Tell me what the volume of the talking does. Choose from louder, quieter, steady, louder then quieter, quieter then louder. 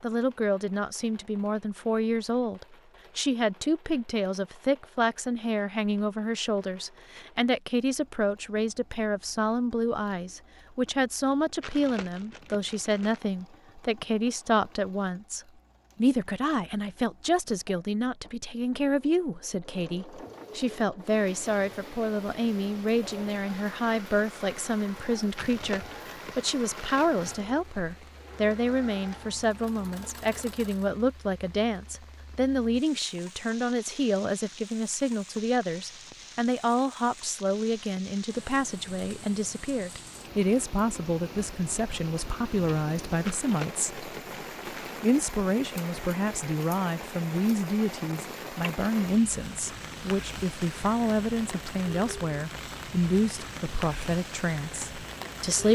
steady.